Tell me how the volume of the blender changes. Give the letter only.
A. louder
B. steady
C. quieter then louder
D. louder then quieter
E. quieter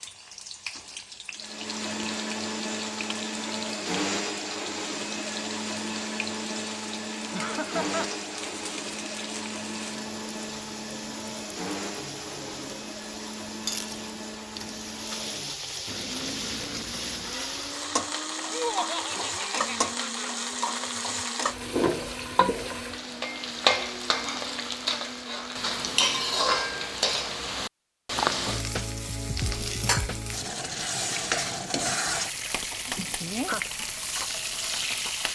E.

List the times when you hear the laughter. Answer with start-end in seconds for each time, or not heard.
7.3-8.1, 18.5-20.5, 33.0-33.6.